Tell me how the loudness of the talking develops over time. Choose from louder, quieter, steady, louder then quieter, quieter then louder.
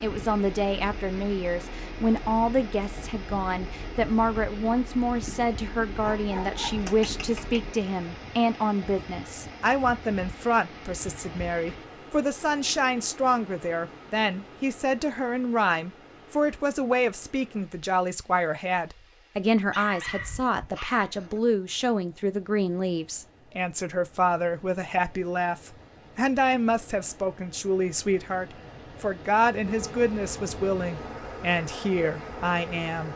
steady.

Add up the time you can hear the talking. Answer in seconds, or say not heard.
33 s.